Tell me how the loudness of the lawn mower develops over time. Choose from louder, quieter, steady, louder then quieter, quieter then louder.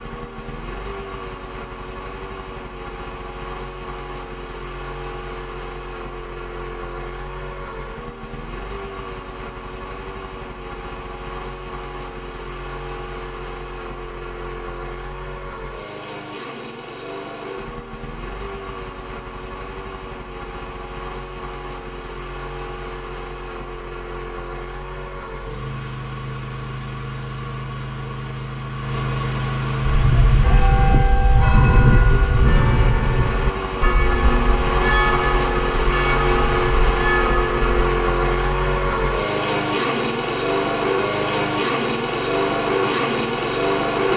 louder.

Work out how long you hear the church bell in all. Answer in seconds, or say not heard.
8 s.